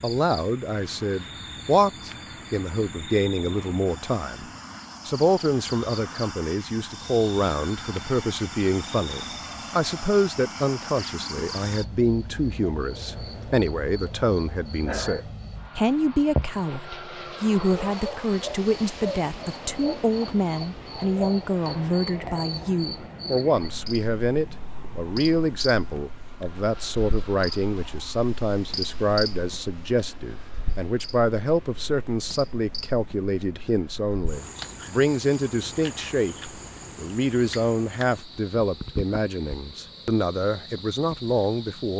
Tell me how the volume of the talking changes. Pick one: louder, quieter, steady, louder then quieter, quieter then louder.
steady.